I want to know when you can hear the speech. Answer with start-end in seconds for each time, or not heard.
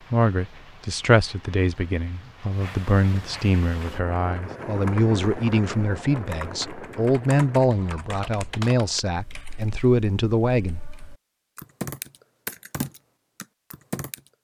0.1-10.8.